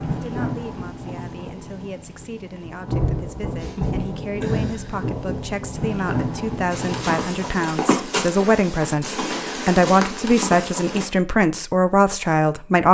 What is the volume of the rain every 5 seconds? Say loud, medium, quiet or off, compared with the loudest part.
loud, loud, off.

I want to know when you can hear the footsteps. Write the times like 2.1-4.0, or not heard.
6.7-11.1.